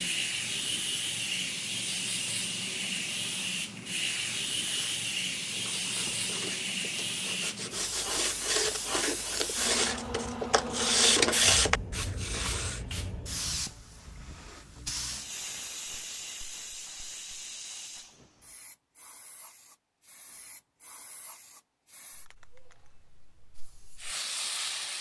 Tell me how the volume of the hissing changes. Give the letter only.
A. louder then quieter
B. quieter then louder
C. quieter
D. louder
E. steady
C.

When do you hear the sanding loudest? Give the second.
11 s.